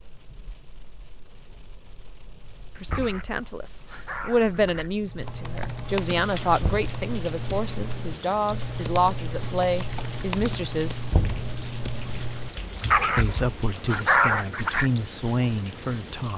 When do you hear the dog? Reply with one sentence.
The dog can be heard from 2.9 to 4.9 s and from 12.9 to 14.9 s.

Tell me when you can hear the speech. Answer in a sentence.
The speech can be heard from 2.8 to 11.1 s and from 13.2 to 16.3 s.